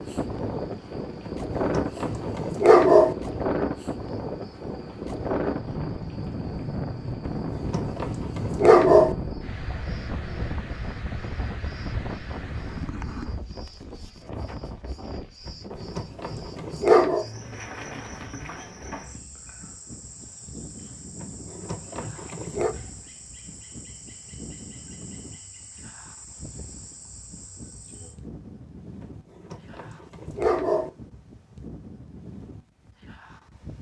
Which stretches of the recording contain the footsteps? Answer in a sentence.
The footsteps can't be heard in this clip.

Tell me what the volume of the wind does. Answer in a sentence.
The volume of the wind goes down.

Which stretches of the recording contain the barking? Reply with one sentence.
You can hear the barking from 1.2 to 3.1 s, from 7.2 to 9.2 s, from 15.4 to 17.2 s, from 21.2 to 22.8 s and from 29.0 to 30.9 s.